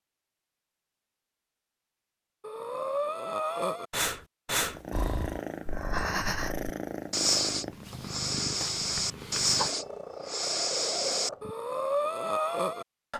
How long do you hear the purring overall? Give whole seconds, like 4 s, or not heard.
7 s.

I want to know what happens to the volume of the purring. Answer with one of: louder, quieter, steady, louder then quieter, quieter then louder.
steady.